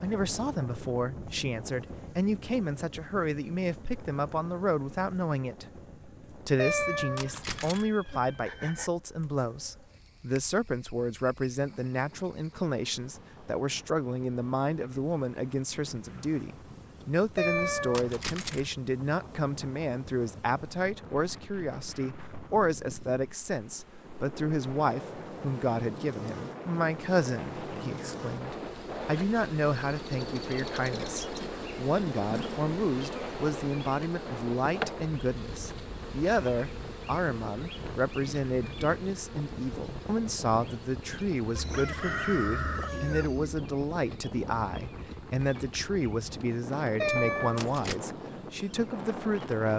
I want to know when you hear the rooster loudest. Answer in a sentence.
The volume of the rooster peaks at 42 seconds.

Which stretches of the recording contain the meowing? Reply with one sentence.
The meowing can be heard from 6.5 to 7.8 s, from 17.4 to 18.7 s and from 47.0 to 48.0 s.